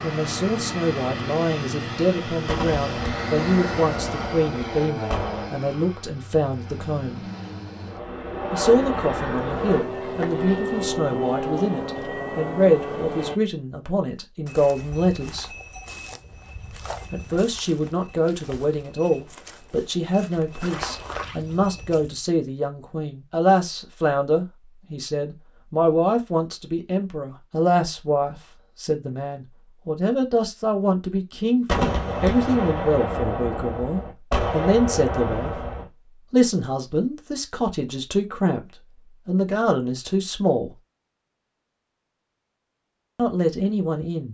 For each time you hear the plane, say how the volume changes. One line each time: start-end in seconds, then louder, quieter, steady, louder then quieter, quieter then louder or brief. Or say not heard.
0.0-13.3 quieter then louder.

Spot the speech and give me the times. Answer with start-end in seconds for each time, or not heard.
0.0-7.2, 8.5-15.5, 17.1-35.6, 36.3-40.7, 43.1-44.2.